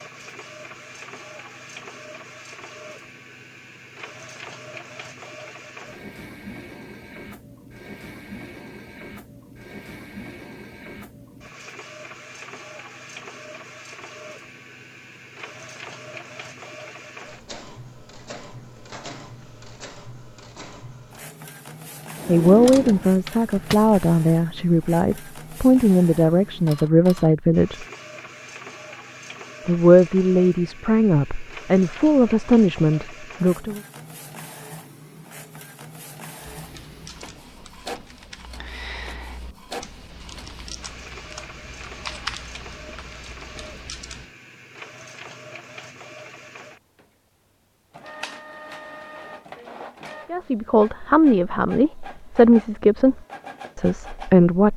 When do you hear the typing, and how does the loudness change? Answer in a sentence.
You can hear the typing from 36.4 to 44.3 s, getting louder then quieter.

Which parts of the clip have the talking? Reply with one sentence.
The talking can be heard from 22.2 to 27.9 s, from 29.6 to 33.8 s and from 50.3 to 54.7 s.